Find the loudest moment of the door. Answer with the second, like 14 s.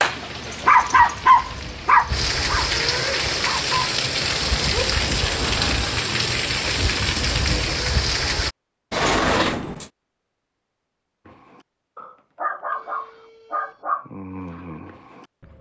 9 s.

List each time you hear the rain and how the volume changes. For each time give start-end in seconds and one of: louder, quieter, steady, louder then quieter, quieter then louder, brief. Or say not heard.
0.0-8.6 louder.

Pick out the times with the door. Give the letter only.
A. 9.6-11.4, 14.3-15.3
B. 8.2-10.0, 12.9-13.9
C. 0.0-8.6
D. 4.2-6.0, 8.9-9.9
D.